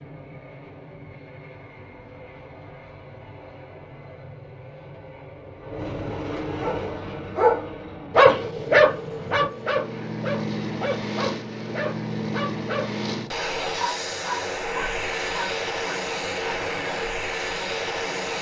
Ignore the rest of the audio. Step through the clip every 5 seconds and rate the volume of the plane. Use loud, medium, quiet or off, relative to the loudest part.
quiet, medium, loud, loud.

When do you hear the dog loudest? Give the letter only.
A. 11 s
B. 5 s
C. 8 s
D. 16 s
C.